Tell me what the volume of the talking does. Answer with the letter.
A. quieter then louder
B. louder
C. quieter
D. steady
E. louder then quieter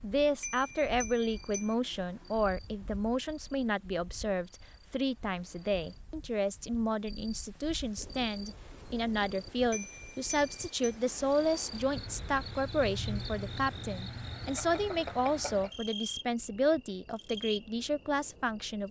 D.